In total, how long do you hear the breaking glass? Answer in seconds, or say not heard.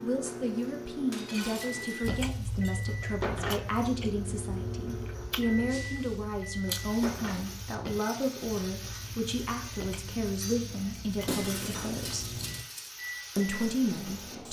4 s.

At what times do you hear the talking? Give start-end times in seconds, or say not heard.
0.0-12.3, 13.3-14.4.